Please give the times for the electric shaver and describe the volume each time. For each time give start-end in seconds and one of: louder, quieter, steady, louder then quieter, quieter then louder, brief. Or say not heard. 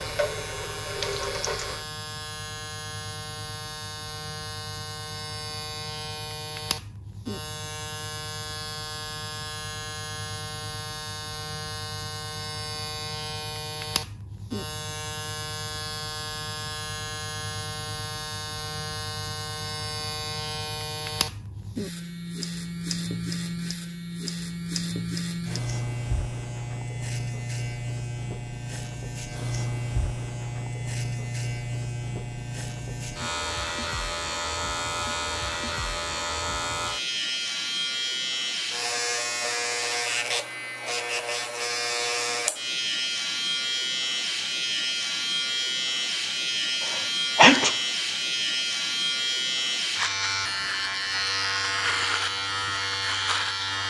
0.0-53.8 louder.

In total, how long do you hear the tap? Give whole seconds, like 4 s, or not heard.
2 s.